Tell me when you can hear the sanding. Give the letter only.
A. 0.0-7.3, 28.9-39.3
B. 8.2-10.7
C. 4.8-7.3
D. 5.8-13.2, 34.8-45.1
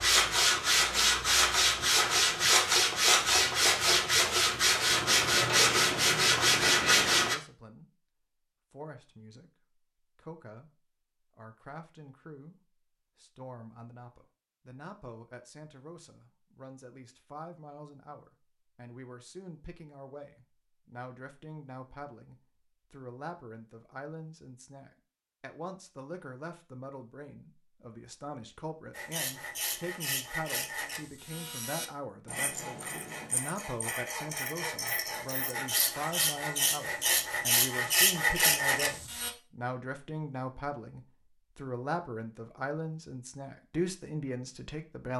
A.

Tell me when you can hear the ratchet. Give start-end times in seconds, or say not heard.
4.8-7.3.